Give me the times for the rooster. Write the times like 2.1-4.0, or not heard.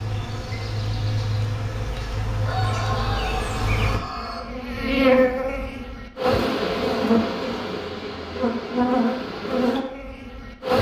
2.5-4.4.